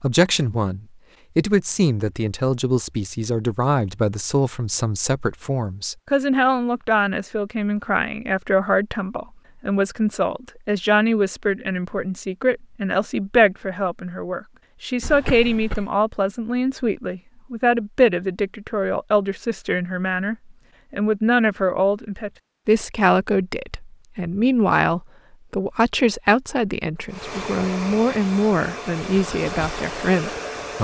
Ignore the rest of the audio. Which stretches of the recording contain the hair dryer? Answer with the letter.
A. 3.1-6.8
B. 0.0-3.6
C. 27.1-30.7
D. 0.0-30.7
C.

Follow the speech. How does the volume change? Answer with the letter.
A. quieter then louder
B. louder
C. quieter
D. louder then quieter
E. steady
E.